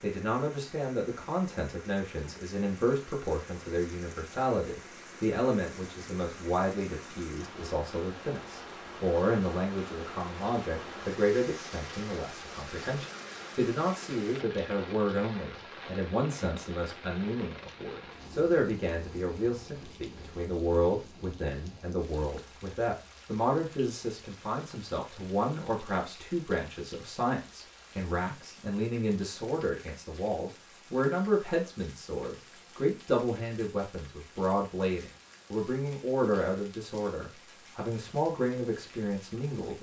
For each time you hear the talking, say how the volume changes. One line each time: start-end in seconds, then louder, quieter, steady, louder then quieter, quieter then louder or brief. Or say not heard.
0.0-39.7 steady.